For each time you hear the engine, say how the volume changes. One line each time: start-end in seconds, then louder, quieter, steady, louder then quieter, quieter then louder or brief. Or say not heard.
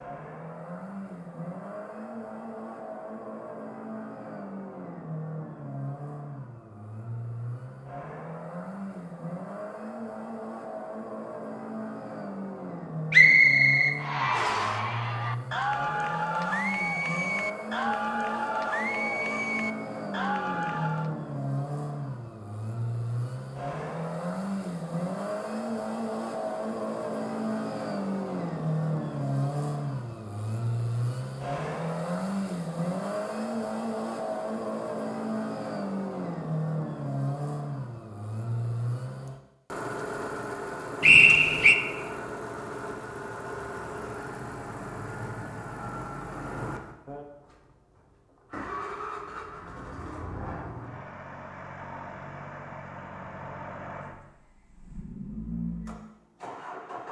0.0-57.0 louder then quieter.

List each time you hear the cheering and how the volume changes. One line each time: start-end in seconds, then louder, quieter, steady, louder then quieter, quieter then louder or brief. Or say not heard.
13.9-21.1 steady.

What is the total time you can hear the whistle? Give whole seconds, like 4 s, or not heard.
2 s.